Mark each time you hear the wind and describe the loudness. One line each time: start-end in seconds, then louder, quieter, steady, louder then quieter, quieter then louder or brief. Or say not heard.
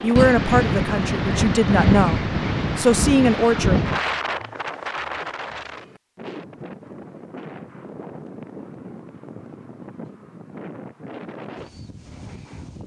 0.0-12.8 quieter.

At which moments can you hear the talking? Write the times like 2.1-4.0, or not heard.
0.0-3.8.